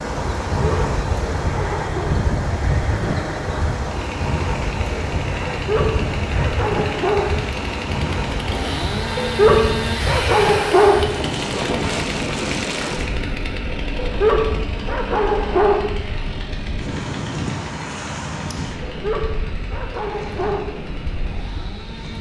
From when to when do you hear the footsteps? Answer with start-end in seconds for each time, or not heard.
not heard.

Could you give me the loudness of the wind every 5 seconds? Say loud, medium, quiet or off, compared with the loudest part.
loud, loud, loud, medium, medium.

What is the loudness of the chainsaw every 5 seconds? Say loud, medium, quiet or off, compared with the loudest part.
medium, loud, loud, medium, medium.